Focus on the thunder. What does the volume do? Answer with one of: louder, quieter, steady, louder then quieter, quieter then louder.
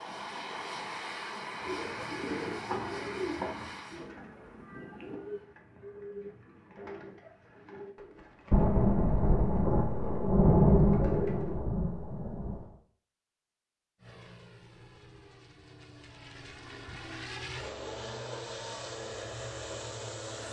louder then quieter.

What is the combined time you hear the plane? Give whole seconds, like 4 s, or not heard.
12 s.